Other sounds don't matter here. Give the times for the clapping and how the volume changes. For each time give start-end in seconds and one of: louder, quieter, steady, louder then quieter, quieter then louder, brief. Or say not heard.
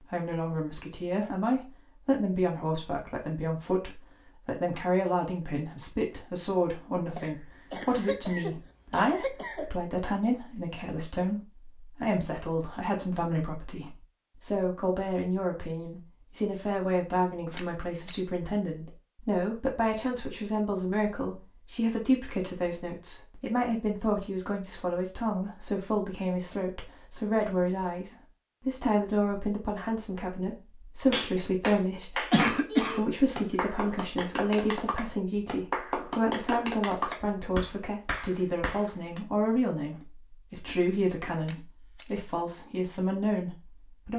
31.1-39.2 steady.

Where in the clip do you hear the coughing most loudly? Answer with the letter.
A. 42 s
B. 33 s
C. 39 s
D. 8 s
B.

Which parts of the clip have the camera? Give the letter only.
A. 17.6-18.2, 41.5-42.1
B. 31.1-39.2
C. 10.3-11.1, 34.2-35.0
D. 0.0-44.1
A.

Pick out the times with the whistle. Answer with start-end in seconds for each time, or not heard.
not heard.